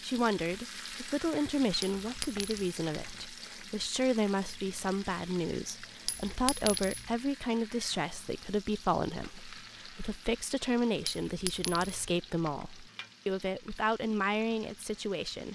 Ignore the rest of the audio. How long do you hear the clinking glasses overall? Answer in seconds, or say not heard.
3 s.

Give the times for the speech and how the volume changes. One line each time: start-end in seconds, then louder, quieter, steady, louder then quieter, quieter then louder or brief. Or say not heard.
0.0-15.5 steady.